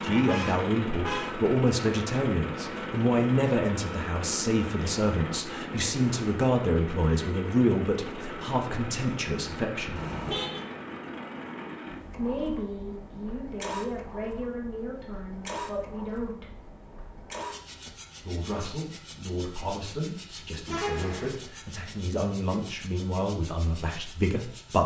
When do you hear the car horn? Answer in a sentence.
The car horn can be heard from 0.2 to 1.4 s, from 9.9 to 10.7 s and from 20.6 to 21.3 s.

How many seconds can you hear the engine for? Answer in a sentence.
You can hear the engine for 25 seconds altogether.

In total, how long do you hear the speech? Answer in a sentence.
The speech can be heard for 21 seconds in total.